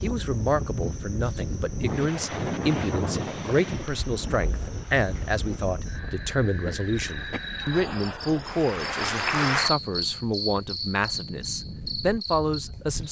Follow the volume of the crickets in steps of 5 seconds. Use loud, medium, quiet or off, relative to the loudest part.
quiet, loud, loud.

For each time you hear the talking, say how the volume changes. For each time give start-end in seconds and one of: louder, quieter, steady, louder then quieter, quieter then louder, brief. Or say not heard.
0.0-13.0 steady.